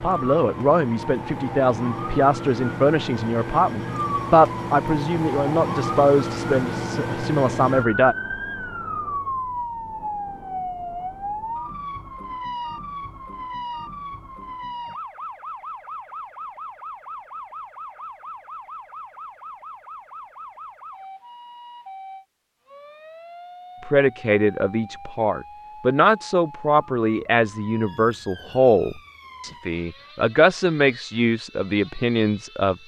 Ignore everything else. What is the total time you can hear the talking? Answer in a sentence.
The talking can be heard for 17 seconds in total.